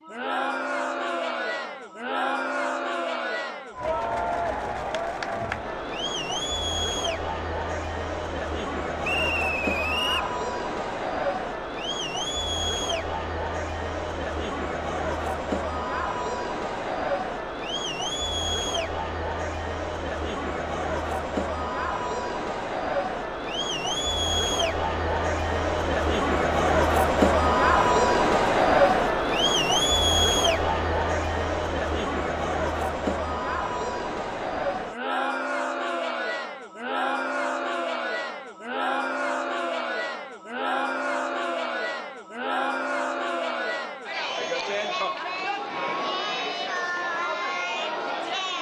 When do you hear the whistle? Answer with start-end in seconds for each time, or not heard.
9.0-10.3.